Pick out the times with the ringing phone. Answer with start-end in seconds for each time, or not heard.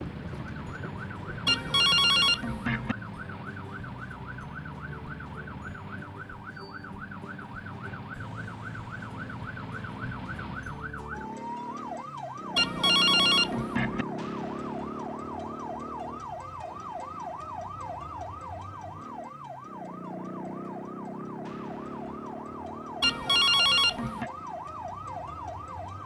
1.4-3.0, 12.6-14.1, 23.0-24.3.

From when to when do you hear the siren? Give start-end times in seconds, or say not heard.
0.0-26.0.